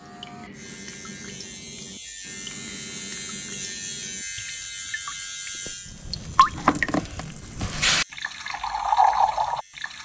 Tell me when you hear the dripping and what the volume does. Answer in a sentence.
You can hear the dripping from 0.0 to 10.0 s, getting louder.